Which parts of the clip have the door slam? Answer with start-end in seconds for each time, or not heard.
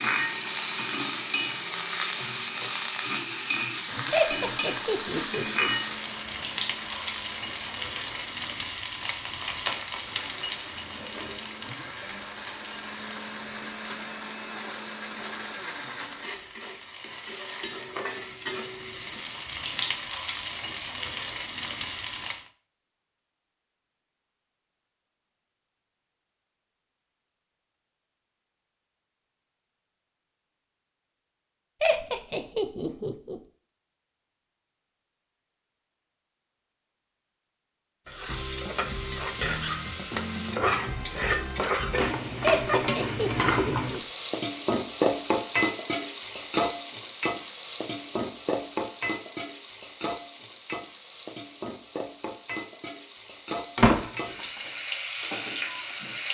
53.8-54.4.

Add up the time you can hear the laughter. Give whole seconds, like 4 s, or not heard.
5 s.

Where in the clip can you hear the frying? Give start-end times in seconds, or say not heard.
0.0-22.4, 38.0-56.3.